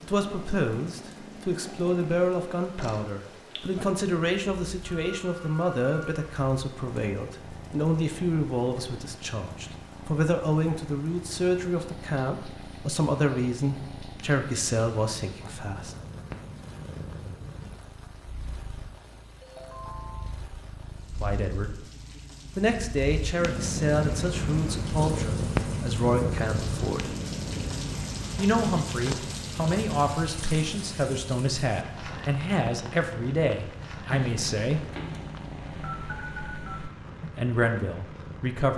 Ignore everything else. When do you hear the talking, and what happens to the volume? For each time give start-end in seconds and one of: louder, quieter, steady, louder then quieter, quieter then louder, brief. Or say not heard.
0.0-15.9 steady
21.1-21.8 brief
22.6-27.1 quieter then louder
28.4-34.9 steady
37.2-38.7 brief.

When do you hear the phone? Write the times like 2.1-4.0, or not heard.
4.8-6.2, 19.4-20.3, 34.1-36.9.